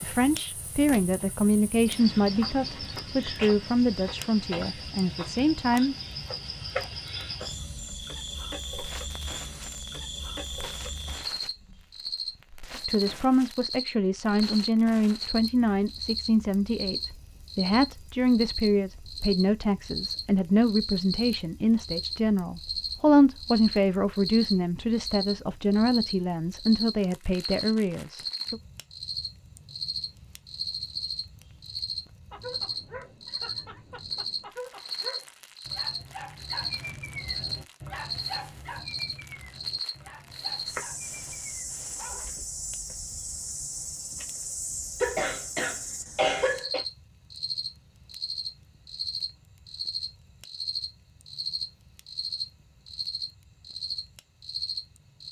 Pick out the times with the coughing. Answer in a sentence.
The coughing can be heard from 45.0 to 46.9 s.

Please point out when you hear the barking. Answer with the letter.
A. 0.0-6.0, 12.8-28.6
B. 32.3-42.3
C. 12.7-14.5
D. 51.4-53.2
B.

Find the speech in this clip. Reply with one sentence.
You can hear the speech from 0.0 to 6.0 s and from 12.8 to 28.6 s.